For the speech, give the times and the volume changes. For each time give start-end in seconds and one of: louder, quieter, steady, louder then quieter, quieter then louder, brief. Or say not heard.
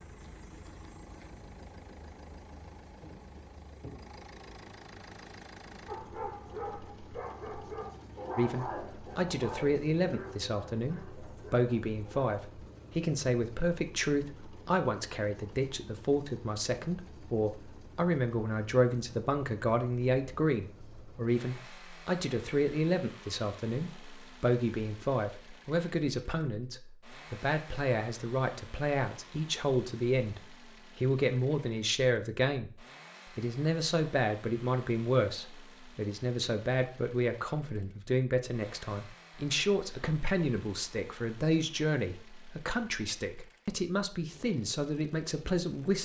8.3-45.9 steady.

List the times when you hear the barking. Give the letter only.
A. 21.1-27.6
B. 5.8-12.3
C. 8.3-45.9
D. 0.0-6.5
B.